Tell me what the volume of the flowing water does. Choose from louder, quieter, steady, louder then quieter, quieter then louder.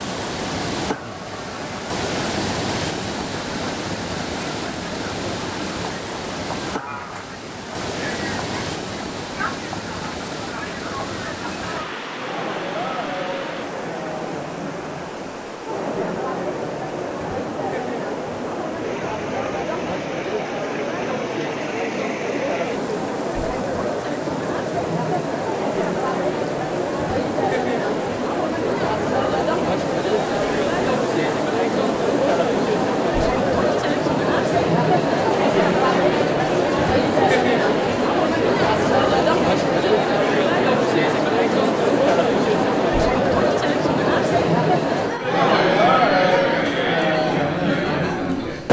quieter.